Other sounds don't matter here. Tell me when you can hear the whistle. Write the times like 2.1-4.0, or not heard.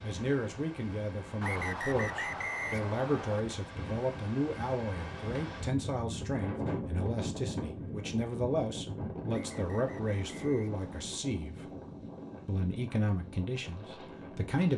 1.4-3.4, 9.3-11.1.